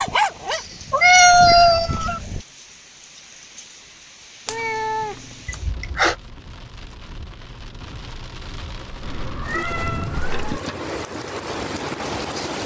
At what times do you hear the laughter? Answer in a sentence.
The laughter can be heard from 5.5 to 6.2 s.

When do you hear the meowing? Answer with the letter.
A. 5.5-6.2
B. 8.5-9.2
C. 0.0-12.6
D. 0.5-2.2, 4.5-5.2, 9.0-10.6
D.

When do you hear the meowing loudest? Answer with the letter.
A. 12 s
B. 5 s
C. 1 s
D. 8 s
C.